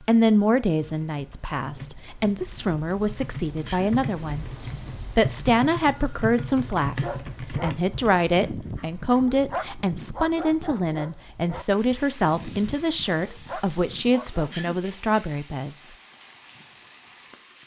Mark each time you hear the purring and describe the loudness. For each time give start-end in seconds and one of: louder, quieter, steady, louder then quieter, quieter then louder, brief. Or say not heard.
not heard.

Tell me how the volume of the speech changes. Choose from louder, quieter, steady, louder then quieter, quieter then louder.
steady.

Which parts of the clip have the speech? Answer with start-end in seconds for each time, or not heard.
0.0-15.9.